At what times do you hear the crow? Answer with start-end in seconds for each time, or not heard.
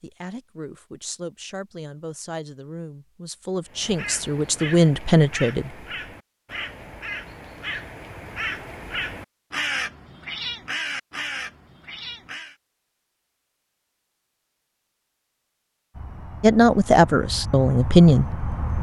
3.6-12.6.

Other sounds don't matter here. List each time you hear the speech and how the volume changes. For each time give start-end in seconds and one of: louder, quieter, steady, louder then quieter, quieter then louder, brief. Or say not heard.
0.0-5.7 louder
16.4-18.4 brief.